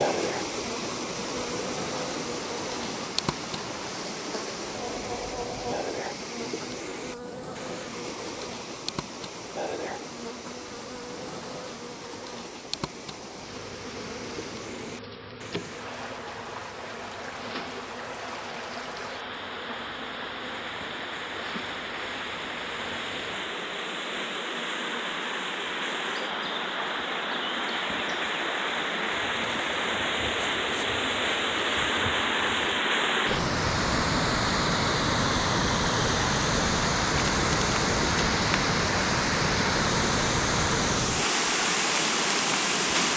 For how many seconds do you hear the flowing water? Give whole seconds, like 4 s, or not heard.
43 s.